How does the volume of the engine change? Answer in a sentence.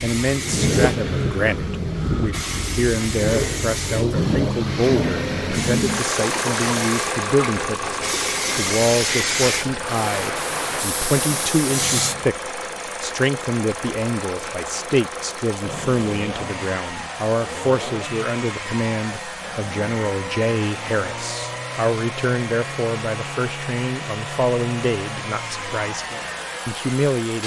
The volume of the engine goes down.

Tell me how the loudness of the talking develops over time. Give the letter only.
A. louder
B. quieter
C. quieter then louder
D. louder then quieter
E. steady
E.